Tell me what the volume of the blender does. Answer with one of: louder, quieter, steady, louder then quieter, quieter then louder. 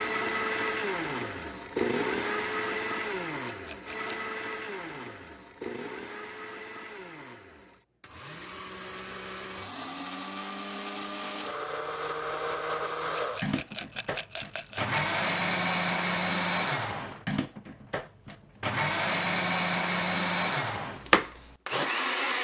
quieter then louder.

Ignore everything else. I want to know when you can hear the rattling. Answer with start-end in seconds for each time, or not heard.
3.5-4.2, 13.1-15.1.